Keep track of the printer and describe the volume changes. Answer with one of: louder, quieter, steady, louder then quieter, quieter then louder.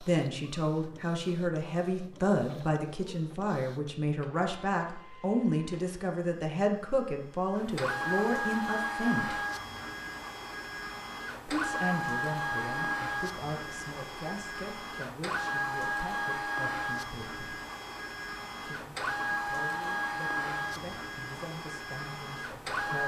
louder.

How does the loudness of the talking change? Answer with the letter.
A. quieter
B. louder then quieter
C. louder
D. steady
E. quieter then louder
A.